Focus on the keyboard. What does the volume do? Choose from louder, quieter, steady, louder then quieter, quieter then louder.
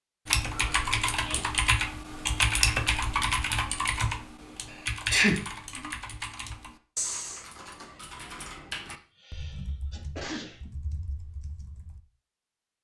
quieter.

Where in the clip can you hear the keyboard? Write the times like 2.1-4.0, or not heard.
0.2-12.0.